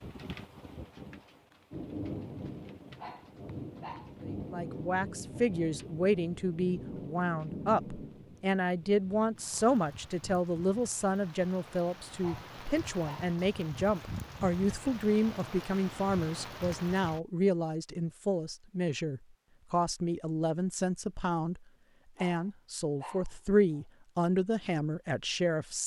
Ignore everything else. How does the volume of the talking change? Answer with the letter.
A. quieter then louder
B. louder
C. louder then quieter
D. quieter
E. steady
E.